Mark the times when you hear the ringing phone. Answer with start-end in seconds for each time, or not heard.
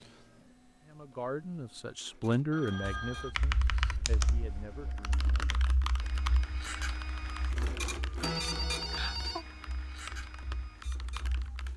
2.5-3.4, 8.2-9.4.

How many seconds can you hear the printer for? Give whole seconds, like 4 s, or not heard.
12 s.